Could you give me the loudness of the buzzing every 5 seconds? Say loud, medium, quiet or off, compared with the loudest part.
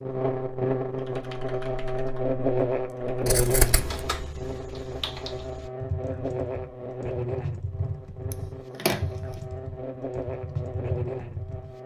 loud, medium, medium.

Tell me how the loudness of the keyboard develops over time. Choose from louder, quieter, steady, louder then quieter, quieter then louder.
louder.